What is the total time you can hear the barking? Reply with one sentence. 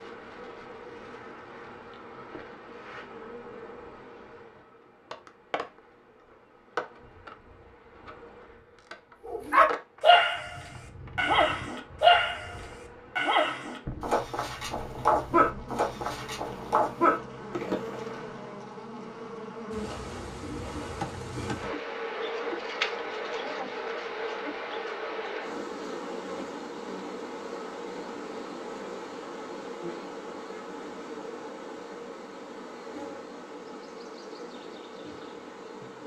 You can hear the barking for 9 seconds altogether.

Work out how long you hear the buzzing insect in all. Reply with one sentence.
You can hear the buzzing insect for 36 seconds altogether.